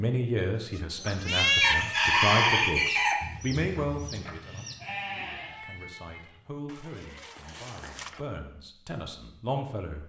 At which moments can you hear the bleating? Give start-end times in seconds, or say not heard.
0.8-8.2.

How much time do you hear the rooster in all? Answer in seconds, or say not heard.
4 s.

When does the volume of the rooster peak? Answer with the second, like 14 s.
2 s.